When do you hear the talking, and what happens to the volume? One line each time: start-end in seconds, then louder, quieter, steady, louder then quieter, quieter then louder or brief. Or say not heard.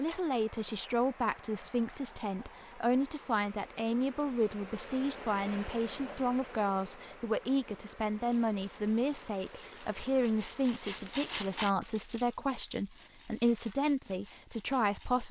0.0-15.2 steady.